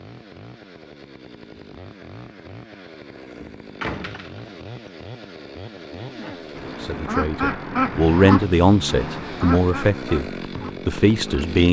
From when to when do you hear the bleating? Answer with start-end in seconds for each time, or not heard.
not heard.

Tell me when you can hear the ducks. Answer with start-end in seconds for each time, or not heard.
6.0-11.5.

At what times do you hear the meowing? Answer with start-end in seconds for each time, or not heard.
not heard.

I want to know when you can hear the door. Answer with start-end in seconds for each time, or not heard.
3.8-4.5.